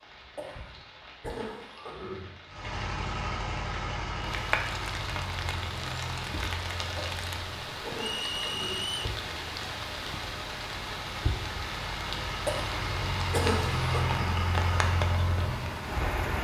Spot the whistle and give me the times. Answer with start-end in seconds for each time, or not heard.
8.0-9.1.